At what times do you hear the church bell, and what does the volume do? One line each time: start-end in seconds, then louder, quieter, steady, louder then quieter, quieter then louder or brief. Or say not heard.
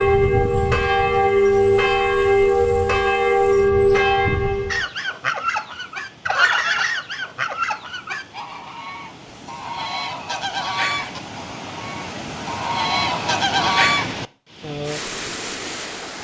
0.0-4.8 steady.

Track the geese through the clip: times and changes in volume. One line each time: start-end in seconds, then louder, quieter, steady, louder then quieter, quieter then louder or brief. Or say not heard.
4.7-14.1 quieter then louder.